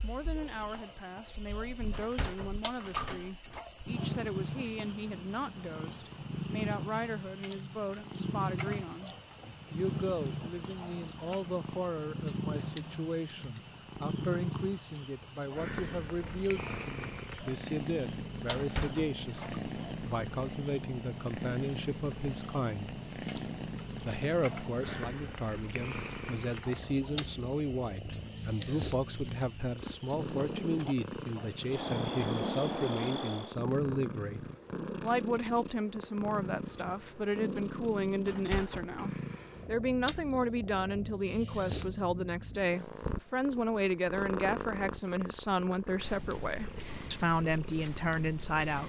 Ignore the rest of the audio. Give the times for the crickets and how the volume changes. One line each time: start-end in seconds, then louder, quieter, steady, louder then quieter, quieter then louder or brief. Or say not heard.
0.0-33.5 steady.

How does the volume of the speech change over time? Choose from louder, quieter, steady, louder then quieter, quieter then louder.
louder.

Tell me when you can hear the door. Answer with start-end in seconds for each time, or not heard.
1.9-3.6, 18.5-19.6, 38.2-39.0.